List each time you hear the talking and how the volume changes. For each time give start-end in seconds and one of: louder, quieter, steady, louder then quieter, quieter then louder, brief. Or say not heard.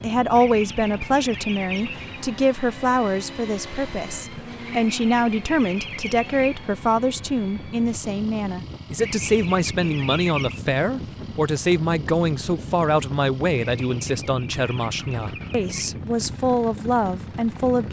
0.0-17.8 steady.